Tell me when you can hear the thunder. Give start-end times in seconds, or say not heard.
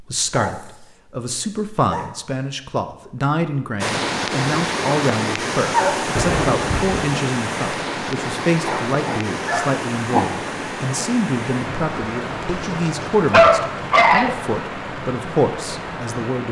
6.2-7.1.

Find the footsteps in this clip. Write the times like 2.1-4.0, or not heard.
not heard.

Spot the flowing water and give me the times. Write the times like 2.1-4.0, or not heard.
3.8-16.4.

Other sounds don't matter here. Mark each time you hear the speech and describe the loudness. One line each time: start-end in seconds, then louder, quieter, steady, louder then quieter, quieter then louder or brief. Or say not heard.
0.0-16.4 steady.